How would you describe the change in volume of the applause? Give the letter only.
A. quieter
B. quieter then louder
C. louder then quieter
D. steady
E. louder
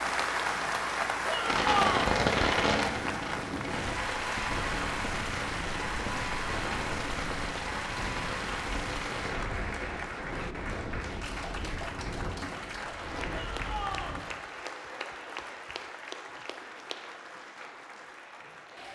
A.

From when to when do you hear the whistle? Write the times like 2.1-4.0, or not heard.
not heard.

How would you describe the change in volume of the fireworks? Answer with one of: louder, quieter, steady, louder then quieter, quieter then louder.
quieter.